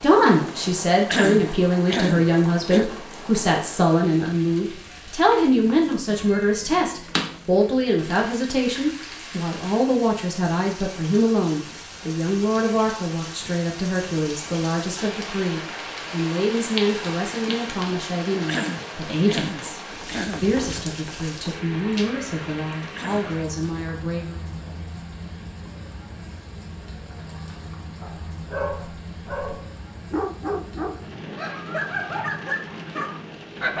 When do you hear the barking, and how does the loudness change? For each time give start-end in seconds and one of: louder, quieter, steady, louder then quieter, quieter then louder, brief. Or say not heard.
28.0-33.7 steady.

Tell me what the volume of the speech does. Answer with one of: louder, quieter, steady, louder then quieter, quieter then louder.
quieter.